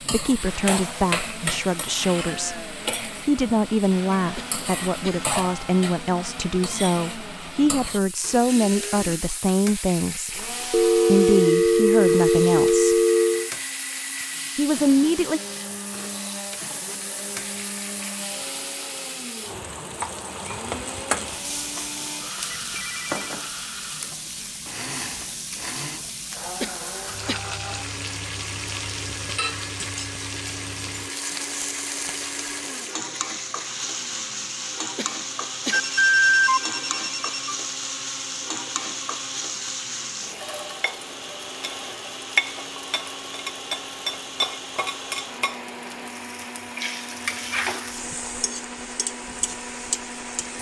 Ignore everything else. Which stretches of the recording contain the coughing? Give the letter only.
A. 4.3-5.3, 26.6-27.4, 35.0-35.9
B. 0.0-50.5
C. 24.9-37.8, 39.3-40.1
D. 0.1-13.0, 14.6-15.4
A.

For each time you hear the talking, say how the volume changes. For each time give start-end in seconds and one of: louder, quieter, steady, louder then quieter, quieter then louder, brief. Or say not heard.
0.1-13.0 steady
14.6-15.4 brief.